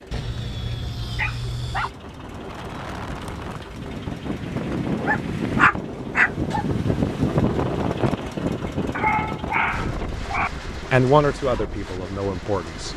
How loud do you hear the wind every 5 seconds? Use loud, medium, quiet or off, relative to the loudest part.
medium, loud, medium.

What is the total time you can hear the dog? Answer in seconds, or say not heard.
5 s.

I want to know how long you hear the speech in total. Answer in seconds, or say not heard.
2 s.